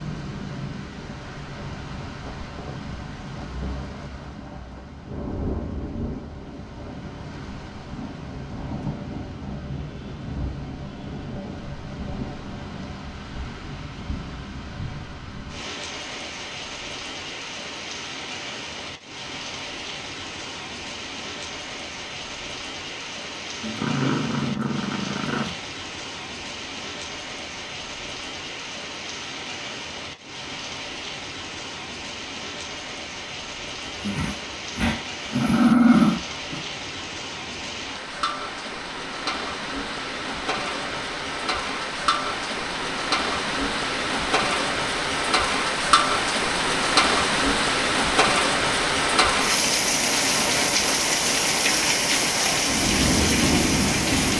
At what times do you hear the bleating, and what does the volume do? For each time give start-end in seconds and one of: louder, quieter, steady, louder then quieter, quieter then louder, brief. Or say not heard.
not heard.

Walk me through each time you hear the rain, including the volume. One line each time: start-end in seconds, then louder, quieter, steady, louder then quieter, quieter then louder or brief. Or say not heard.
0.0-54.3 louder.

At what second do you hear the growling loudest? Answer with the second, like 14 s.
36 s.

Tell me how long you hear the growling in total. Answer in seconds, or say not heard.
5 s.